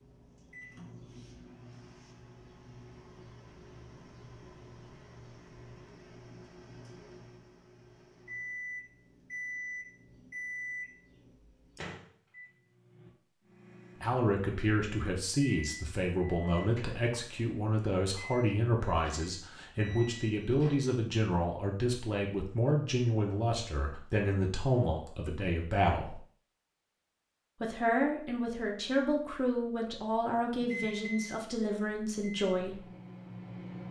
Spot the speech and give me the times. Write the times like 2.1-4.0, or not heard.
14.0-26.1, 27.6-32.8.